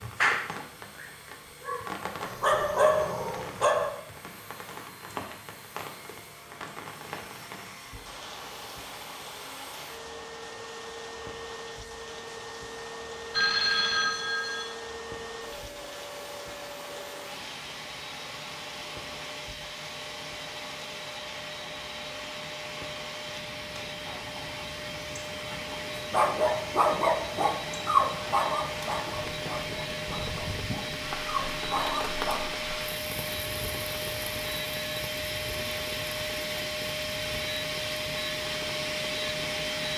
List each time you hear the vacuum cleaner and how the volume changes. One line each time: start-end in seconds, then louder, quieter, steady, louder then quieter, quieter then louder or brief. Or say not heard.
0.0-39.9 louder.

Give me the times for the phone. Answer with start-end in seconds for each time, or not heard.
13.3-14.7.